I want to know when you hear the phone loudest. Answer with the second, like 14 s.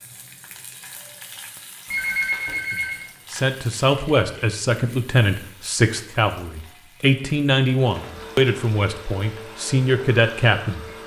2 s.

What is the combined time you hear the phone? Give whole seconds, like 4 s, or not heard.
2 s.